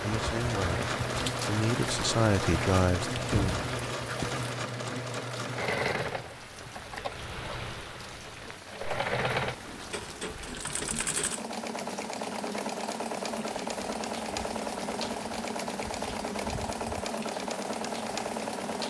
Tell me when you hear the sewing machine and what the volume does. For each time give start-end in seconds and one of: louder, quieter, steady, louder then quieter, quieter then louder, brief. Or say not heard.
0.0-18.8 steady.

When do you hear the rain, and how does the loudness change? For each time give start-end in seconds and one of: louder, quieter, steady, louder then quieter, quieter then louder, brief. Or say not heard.
0.0-18.8 quieter.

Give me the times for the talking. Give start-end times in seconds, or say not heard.
0.0-3.5.